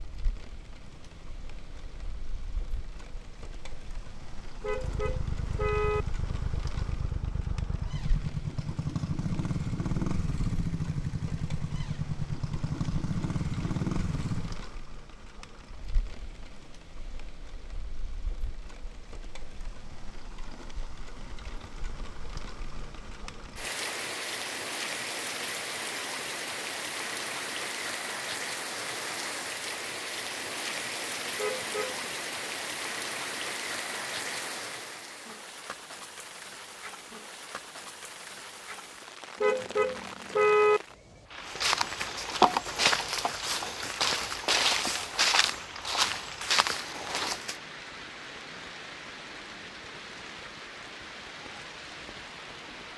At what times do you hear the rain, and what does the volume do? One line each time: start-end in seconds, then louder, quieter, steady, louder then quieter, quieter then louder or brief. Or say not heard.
0.0-52.9 louder then quieter.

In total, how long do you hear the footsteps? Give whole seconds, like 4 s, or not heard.
6 s.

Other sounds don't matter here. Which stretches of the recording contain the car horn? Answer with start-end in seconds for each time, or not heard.
4.6-6.0, 31.4-32.1, 39.4-40.8.